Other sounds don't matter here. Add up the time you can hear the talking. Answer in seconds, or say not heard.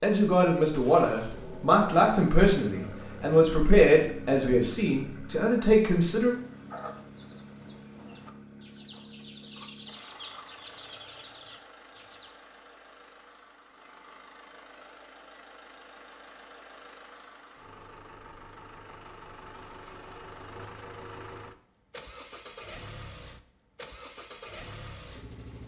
6 s.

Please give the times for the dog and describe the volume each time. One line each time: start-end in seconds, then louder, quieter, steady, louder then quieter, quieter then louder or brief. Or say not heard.
not heard.